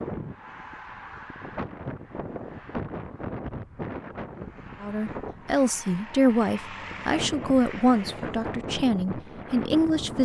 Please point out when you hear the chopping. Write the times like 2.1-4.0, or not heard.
not heard.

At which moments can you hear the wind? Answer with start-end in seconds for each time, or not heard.
0.0-10.2.